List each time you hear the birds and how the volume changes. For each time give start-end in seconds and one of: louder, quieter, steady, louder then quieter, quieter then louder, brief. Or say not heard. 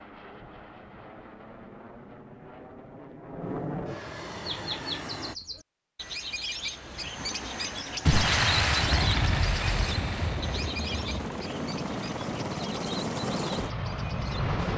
4.5-14.5 quieter.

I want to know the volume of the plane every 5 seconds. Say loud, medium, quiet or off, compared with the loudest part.
medium, medium, loud.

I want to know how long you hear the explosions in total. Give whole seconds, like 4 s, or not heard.
3 s.